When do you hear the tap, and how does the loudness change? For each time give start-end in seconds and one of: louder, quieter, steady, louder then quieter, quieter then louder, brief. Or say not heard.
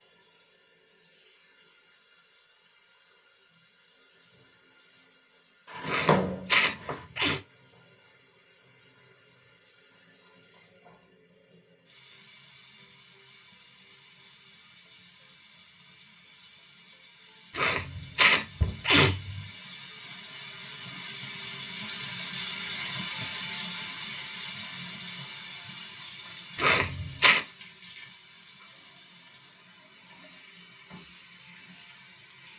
0.0-32.5 louder then quieter.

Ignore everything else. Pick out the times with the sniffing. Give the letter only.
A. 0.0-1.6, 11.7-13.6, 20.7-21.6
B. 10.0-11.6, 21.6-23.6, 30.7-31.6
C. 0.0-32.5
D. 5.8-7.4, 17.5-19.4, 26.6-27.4
D.